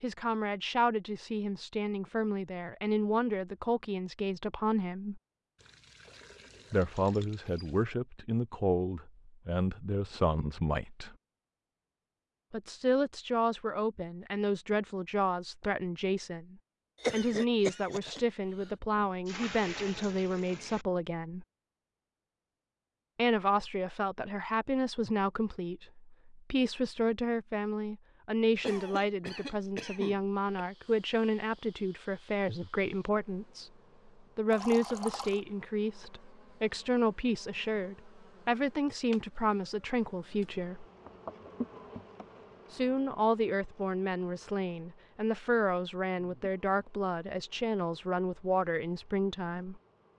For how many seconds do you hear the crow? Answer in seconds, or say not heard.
not heard.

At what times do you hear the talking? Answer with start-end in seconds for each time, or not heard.
0.0-5.2, 6.7-11.2, 12.5-21.4, 23.1-33.7, 34.4-40.9, 42.7-49.8.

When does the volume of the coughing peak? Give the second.
17 s.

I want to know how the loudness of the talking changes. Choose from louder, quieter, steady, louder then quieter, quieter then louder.
steady.